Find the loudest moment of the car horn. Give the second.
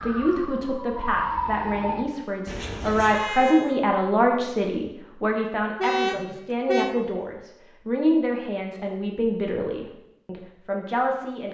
6 s.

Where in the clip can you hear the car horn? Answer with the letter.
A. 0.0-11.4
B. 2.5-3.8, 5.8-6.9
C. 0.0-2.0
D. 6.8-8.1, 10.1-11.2
B.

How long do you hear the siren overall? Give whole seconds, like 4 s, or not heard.
2 s.